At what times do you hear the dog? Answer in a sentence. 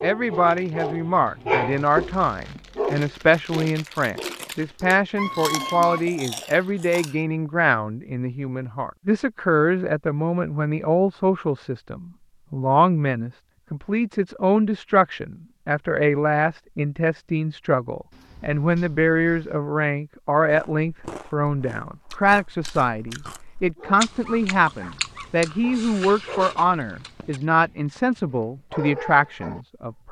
You can hear the dog from 0.0 to 5.1 s and from 23.8 to 29.6 s.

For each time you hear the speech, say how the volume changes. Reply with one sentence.
You can hear the speech from 0.0 to 30.0 s, at a steady volume.